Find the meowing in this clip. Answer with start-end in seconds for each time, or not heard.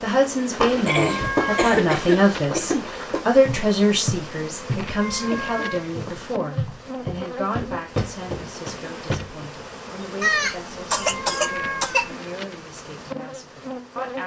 1.0-1.8, 5.0-5.8, 10.9-12.0.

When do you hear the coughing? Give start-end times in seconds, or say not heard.
0.8-2.9, 5.2-6.2, 10.2-12.1.